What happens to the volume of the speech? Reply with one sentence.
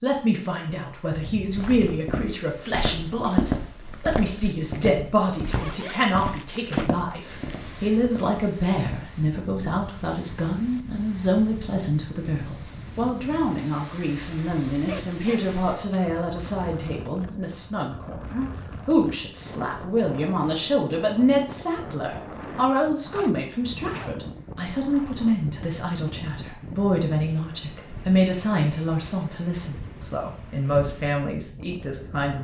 The loudness of the speech stays about the same.